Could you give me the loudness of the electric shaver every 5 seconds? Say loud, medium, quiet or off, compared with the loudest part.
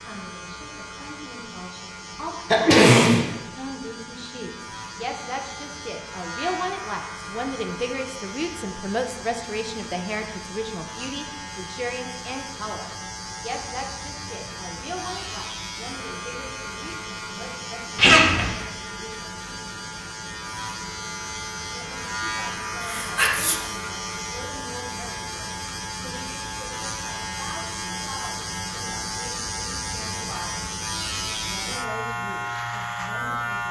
medium, medium, medium, medium, loud, loud, loud.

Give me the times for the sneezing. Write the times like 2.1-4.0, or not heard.
2.5-3.2, 17.9-18.5, 22.8-23.6.